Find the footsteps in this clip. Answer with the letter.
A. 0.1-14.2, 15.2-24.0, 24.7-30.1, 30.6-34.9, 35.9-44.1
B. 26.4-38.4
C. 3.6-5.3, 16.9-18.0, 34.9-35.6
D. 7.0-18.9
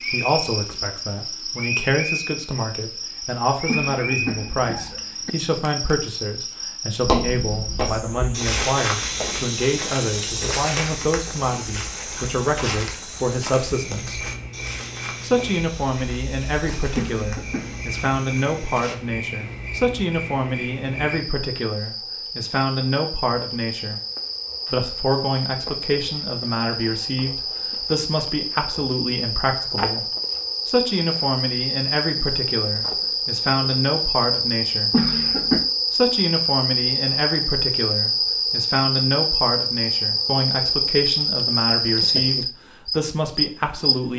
D.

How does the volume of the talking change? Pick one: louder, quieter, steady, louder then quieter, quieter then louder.
steady.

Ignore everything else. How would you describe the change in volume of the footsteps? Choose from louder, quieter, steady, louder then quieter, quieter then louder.
quieter.